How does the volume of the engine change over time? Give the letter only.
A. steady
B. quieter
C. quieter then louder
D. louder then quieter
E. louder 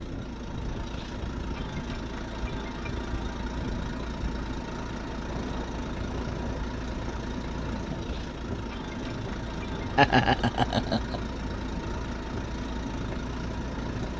A.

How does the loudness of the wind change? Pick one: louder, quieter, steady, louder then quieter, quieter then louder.
steady.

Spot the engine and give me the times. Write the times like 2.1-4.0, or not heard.
0.0-14.1.